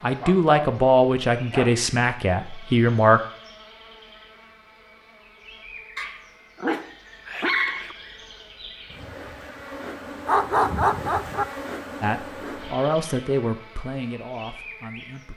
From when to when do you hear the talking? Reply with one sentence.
The talking can be heard from 0.0 to 3.2 s and from 12.0 to 15.3 s.